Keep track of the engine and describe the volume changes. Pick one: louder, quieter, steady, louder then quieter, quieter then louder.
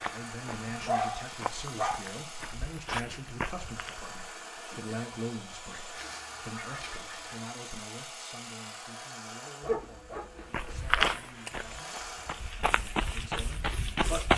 steady.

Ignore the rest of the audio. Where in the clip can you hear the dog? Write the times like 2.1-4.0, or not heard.
0.6-2.0, 5.9-7.5, 9.6-11.2.